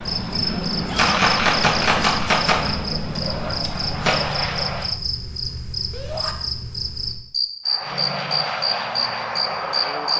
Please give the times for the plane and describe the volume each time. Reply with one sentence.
The plane can be heard from 0.0 to 5.0 s, at a steady volume; and briefly from 7.7 to 10.1 s.